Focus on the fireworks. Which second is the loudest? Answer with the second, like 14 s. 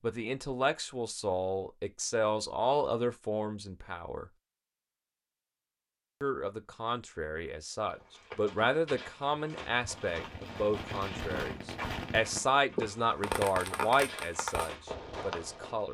13 s.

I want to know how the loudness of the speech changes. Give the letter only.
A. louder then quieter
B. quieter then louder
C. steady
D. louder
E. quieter
C.